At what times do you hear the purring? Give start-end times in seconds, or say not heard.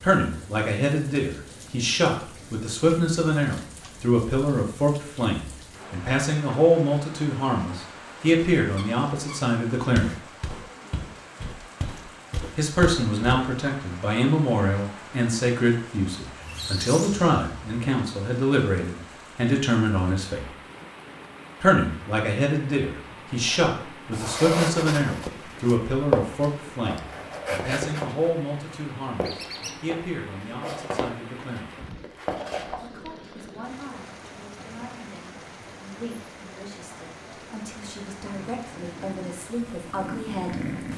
38.2-40.9.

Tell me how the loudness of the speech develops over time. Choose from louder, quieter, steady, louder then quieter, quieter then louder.
quieter.